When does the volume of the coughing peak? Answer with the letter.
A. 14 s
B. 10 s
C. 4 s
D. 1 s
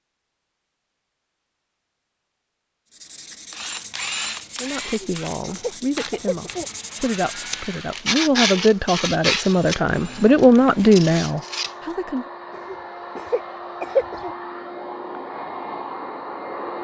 A.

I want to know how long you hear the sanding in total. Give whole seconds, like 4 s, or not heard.
9 s.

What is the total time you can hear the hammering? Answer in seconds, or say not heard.
not heard.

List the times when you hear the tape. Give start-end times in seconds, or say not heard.
not heard.